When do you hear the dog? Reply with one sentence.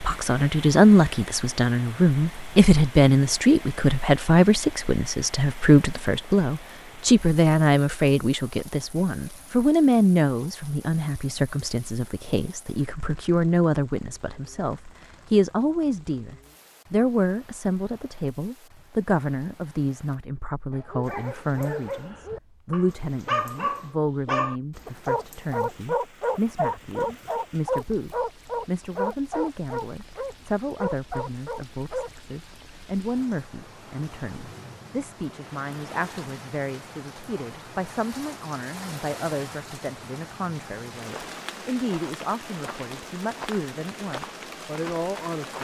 You can hear the dog from 20.7 to 32.1 s.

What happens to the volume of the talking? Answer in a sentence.
The loudness of the talking goes down.